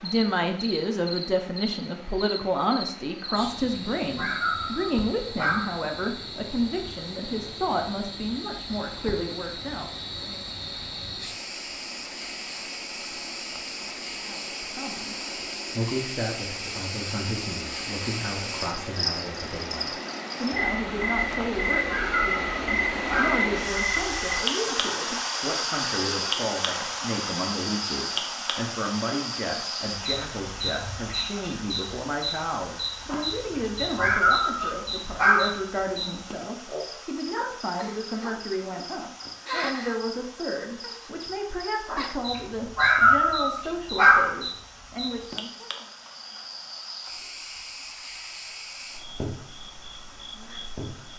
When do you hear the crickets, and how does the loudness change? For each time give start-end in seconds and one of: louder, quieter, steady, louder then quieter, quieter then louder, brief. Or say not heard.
0.0-51.1 louder then quieter.